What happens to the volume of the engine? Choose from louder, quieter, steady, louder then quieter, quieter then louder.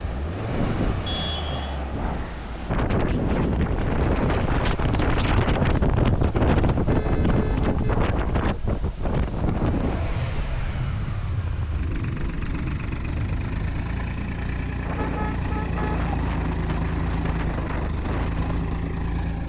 louder.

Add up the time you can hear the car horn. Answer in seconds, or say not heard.
3 s.